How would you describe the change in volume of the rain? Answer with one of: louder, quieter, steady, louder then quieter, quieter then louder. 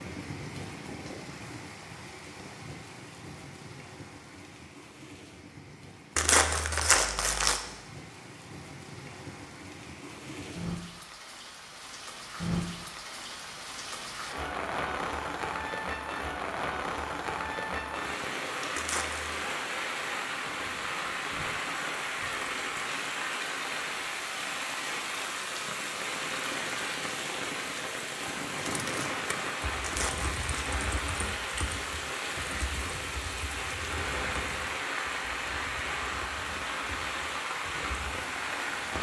louder.